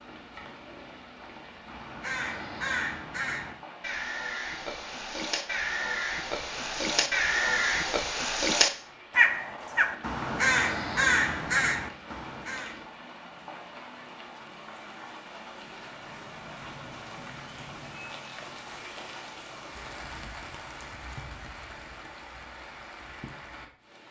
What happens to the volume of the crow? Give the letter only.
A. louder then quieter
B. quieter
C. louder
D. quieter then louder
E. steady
C.